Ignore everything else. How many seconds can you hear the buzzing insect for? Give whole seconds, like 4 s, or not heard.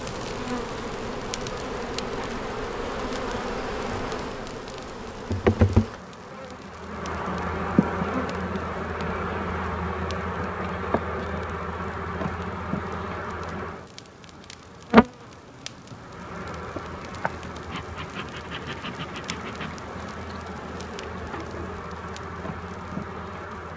24 s.